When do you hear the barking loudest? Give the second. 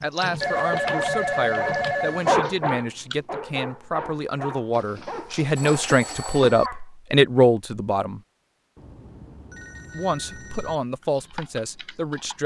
2 s.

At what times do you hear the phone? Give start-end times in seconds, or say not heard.
0.4-2.3, 4.8-6.7, 8.8-10.8.